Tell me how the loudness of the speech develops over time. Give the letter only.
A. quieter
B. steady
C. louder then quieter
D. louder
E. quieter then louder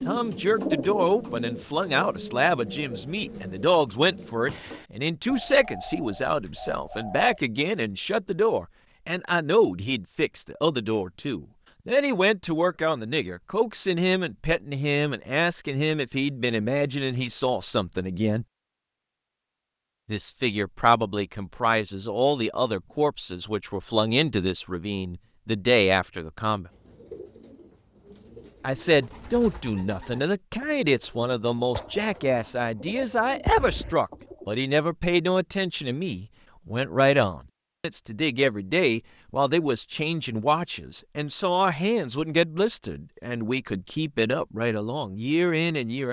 B.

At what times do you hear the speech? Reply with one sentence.
The speech can be heard from 0.1 to 18.4 s, from 20.1 to 26.7 s and from 28.6 to 46.0 s.